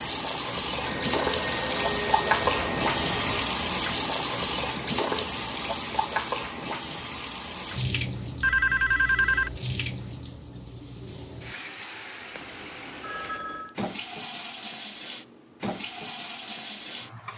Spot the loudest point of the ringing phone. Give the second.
9 s.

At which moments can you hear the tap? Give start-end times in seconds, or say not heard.
0.0-17.3.